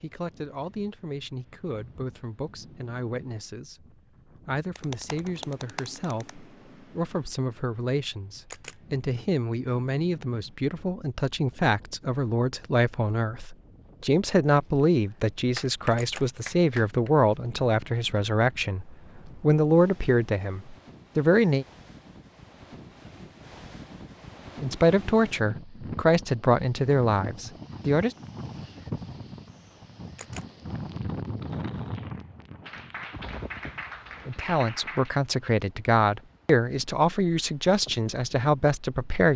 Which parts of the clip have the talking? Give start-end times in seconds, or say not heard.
0.0-21.6, 24.6-28.1, 34.2-39.3.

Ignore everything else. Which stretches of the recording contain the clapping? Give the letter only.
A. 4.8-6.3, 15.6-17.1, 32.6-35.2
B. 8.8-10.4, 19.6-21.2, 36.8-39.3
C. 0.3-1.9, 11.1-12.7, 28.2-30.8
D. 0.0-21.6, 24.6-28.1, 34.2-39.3
A.